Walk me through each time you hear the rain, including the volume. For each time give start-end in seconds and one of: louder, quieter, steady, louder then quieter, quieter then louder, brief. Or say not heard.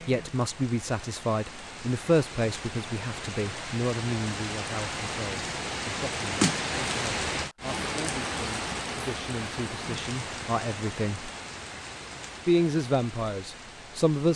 0.0-14.3 louder then quieter.